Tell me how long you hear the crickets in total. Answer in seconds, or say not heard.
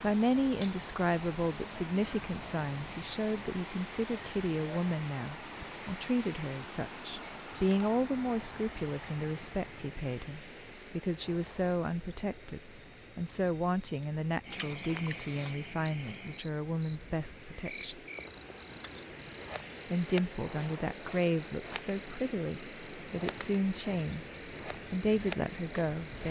26 s.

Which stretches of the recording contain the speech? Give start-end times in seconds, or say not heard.
0.0-18.0, 19.9-26.2.